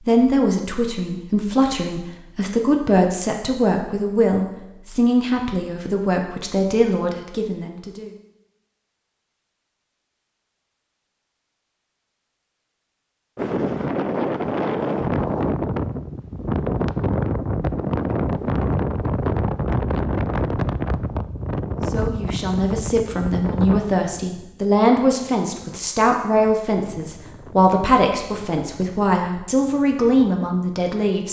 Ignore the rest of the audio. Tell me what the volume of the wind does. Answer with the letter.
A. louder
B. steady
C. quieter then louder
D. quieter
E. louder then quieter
D.